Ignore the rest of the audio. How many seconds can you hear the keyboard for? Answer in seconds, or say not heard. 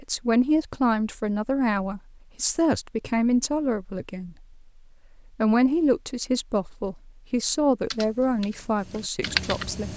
2 s.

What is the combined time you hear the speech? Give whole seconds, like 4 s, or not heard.
9 s.